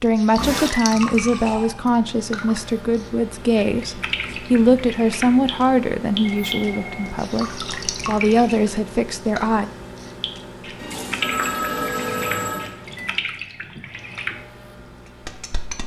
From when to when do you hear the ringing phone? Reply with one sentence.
The ringing phone can be heard from 0.3 to 1.8 s, from 6.2 to 7.2 s and from 10.8 to 12.7 s.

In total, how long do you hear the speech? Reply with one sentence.
The speech can be heard for 10 seconds in total.